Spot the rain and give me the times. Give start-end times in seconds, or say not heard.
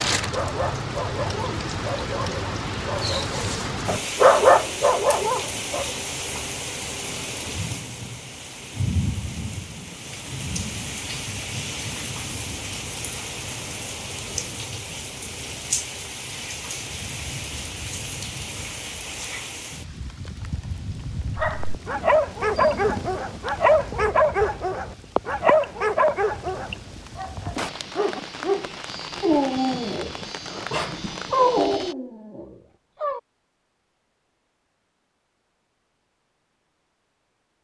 0.0-31.9.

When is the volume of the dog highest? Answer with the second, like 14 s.
4 s.